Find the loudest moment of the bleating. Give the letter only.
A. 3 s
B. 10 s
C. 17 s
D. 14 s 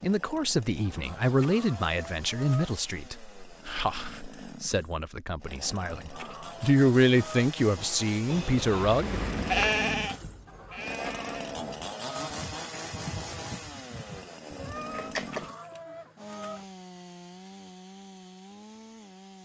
B.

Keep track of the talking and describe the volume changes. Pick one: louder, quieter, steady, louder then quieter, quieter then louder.
quieter then louder.